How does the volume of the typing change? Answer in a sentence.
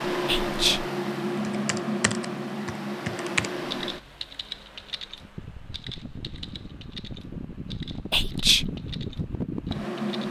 The volume of the typing goes down.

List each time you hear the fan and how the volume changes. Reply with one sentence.
You can hear the fan from 0.0 to 10.2 s, getting quieter then louder.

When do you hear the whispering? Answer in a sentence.
You can hear the whispering from 0.2 to 0.9 s and from 8.1 to 8.7 s.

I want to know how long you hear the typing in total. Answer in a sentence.
You can hear the typing for 9 seconds altogether.